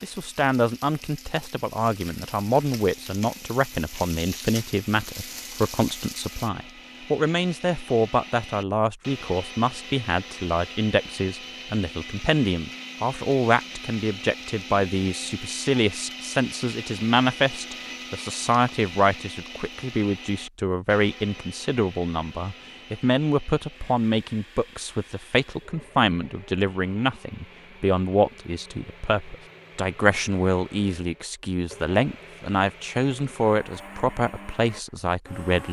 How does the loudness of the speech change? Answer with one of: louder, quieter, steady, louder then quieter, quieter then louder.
steady.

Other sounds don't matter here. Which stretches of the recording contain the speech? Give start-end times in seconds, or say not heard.
0.0-35.6.